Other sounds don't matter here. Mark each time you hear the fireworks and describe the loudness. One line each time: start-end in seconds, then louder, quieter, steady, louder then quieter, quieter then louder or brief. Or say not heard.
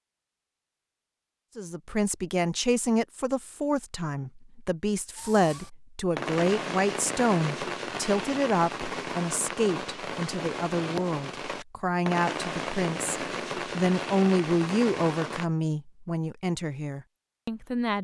5.2-15.5 steady.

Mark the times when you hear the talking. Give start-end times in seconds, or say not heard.
1.6-17.9.